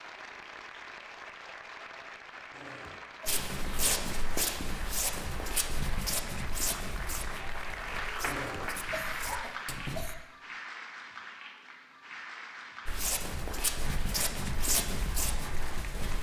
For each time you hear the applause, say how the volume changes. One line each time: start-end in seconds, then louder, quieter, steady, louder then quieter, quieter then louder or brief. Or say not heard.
0.0-16.1 louder then quieter.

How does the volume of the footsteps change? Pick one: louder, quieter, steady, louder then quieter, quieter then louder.
quieter then louder.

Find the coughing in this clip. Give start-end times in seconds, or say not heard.
2.5-3.4, 8.2-10.2.